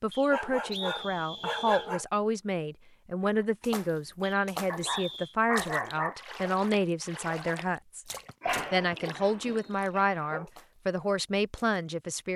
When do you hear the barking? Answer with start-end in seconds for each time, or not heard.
0.3-2.0, 4.7-6.2, 8.4-10.5.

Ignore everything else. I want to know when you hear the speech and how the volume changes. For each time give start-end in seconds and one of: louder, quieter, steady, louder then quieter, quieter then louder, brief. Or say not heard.
0.0-12.3 steady.